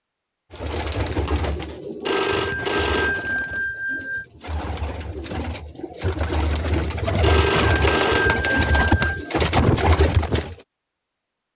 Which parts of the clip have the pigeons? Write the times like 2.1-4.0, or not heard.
0.5-10.6.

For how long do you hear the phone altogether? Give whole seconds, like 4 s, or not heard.
4 s.